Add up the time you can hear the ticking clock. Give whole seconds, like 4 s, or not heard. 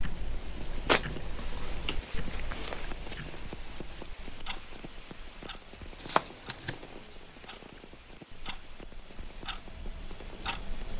11 s.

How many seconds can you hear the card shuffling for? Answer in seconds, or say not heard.
3 s.